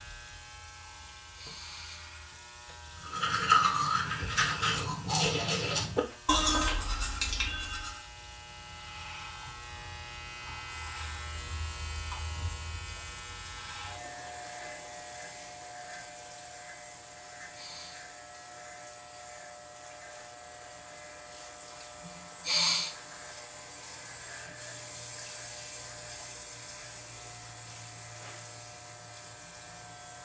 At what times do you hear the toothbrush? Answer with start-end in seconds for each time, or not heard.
3.0-8.0.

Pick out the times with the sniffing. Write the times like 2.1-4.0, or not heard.
1.4-2.0, 17.5-18.1, 22.4-22.9.